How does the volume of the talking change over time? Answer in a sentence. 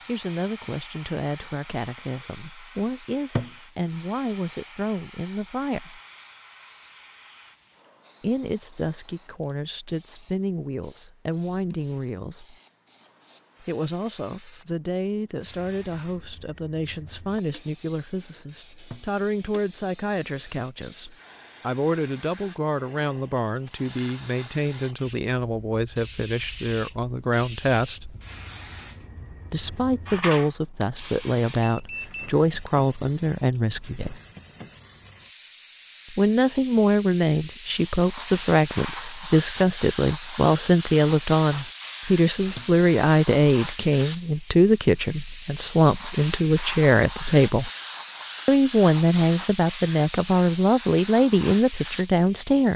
The loudness of the talking goes up.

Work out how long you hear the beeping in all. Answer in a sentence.
The beeping can be heard for 2 seconds in total.